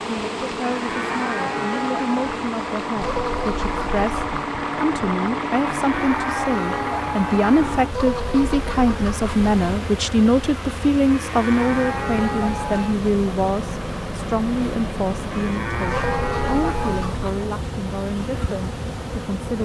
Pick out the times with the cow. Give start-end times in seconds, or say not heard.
0.7-2.4, 5.8-7.5, 11.1-12.9, 15.3-17.1.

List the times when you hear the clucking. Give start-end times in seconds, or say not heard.
3.0-4.4, 7.9-9.6, 15.8-17.4.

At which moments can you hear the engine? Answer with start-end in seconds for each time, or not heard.
0.0-19.6.